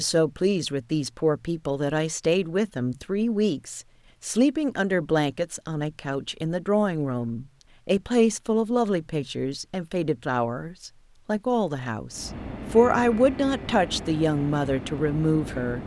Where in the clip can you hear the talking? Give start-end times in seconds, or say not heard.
0.0-15.8.